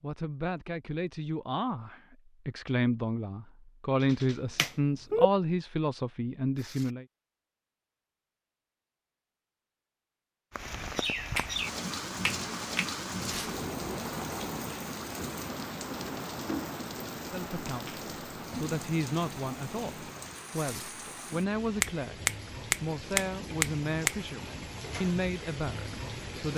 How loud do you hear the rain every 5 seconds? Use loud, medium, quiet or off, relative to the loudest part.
off, off, loud, loud, medium, medium.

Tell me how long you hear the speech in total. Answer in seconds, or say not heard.
16 s.